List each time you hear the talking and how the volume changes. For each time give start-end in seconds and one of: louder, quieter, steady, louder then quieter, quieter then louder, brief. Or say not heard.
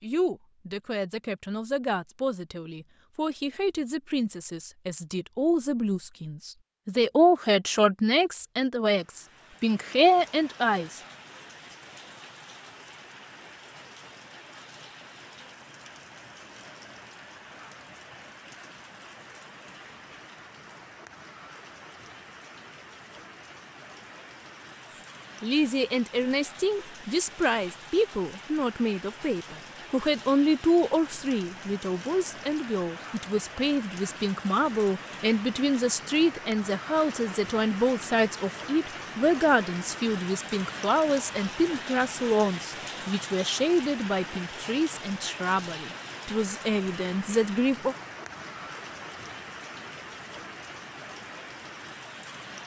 0.0-11.0 louder
25.4-48.0 steady.